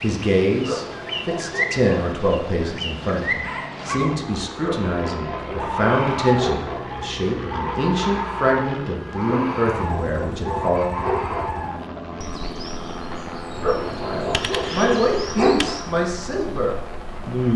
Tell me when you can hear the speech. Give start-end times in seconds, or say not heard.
0.0-11.0, 14.0-17.5.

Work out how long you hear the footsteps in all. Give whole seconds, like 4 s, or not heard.
not heard.